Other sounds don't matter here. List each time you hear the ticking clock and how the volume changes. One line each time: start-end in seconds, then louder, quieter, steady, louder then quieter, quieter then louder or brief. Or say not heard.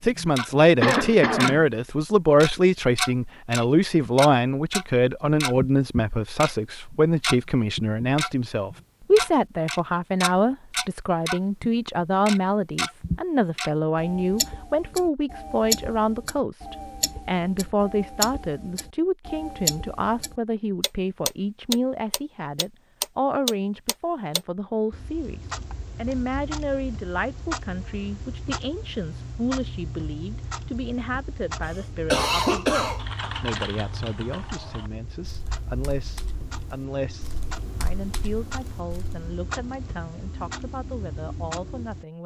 0.0-1.6 brief
2.4-42.0 quieter.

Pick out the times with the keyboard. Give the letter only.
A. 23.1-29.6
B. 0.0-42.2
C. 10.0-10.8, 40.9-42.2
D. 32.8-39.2
D.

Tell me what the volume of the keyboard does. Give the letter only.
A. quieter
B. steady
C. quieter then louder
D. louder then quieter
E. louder
C.